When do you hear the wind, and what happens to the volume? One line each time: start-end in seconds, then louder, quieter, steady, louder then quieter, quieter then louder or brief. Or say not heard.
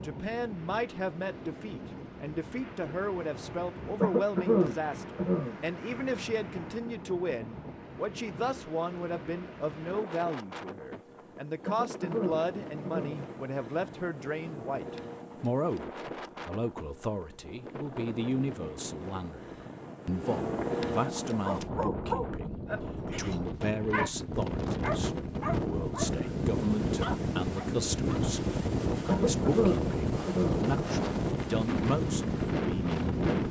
0.0-33.4 louder.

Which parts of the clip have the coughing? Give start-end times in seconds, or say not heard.
4.0-5.6, 11.7-13.2, 29.1-30.6.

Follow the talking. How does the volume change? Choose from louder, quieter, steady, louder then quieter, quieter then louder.
steady.